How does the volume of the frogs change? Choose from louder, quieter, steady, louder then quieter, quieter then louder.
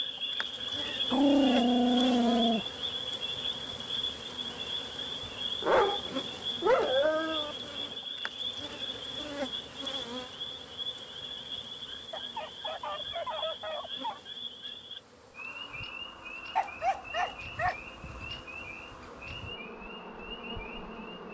quieter.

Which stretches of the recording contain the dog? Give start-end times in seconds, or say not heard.
1.1-2.6, 5.6-7.5, 12.1-14.2, 16.6-18.4.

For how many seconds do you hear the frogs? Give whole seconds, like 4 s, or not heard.
21 s.